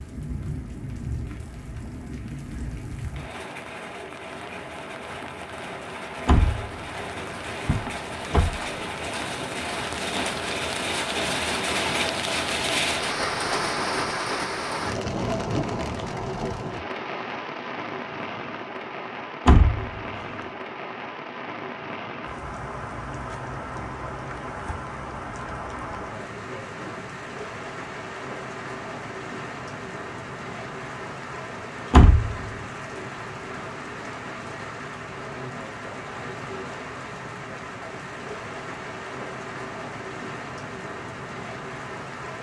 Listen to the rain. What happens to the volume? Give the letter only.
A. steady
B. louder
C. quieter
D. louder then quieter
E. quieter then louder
D.